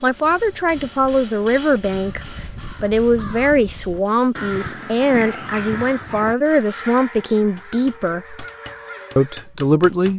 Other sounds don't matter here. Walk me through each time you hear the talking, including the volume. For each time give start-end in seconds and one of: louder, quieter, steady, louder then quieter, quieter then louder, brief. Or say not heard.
0.0-8.4 steady
9.2-10.1 brief.